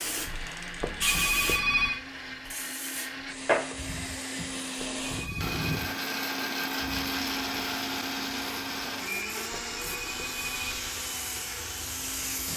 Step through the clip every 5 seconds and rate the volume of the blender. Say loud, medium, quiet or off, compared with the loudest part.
medium, loud, medium.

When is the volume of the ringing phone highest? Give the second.
2 s.